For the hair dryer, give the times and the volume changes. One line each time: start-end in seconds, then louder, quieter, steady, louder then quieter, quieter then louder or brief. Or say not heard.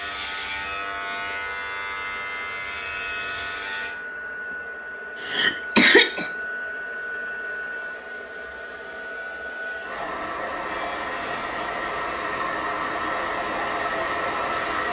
0.0-14.8 louder.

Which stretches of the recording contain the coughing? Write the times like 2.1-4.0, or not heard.
5.2-6.3.